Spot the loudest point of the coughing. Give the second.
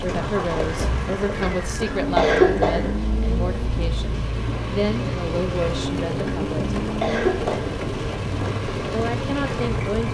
2 s.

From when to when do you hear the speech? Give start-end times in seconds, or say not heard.
0.0-6.8, 8.9-10.0.